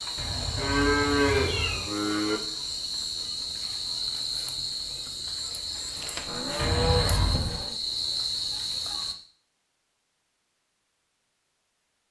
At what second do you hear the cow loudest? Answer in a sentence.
The volume of the cow peaks at 1 second.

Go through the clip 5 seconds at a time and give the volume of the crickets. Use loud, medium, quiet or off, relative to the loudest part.
loud, loud, off.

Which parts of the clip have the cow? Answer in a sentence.
The cow can be heard from 0.6 to 2.4 s and from 6.2 to 7.8 s.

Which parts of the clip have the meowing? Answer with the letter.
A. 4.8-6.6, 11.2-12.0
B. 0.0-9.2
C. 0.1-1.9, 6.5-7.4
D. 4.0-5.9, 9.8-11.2
C.